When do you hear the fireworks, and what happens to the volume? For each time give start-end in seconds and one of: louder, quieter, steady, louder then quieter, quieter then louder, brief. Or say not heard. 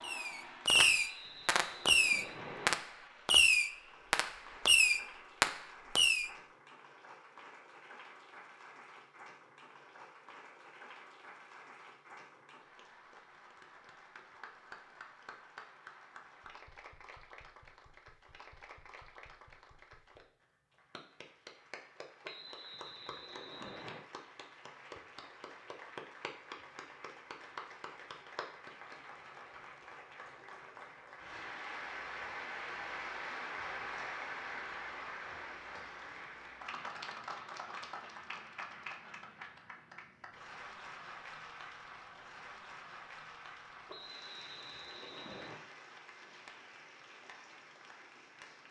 0.0-6.3 steady.